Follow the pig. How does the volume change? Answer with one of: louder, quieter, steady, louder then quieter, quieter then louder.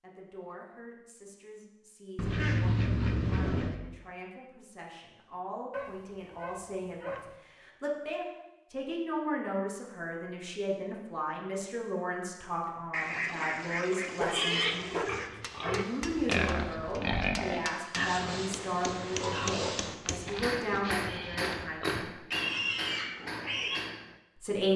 quieter then louder.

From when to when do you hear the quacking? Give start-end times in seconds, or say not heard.
2.1-3.8, 12.9-15.3.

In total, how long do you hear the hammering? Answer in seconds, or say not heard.
9 s.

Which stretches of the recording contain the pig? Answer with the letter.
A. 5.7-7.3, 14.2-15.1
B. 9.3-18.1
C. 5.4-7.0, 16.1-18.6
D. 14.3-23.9
D.